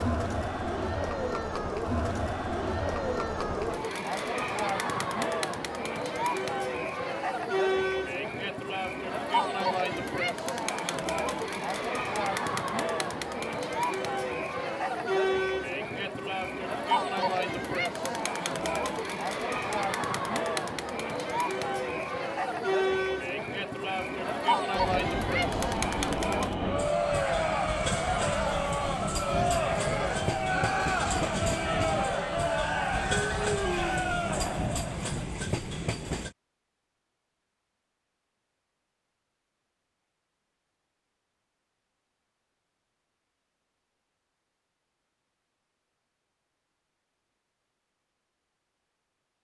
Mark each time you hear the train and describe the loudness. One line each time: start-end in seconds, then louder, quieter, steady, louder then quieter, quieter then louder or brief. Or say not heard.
24.8-36.4 steady.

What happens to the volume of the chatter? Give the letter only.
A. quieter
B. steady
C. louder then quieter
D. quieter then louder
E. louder
B.